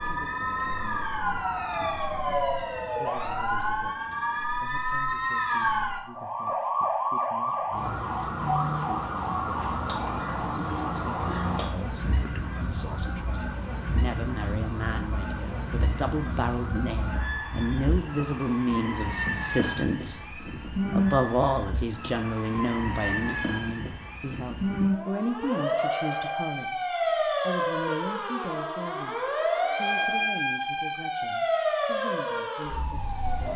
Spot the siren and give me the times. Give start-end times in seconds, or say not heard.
0.0-33.5.